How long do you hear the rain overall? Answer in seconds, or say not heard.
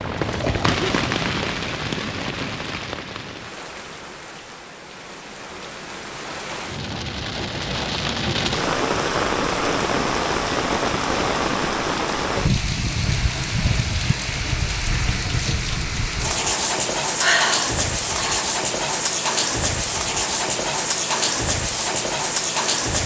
23 s.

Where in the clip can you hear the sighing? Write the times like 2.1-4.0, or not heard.
17.2-18.4.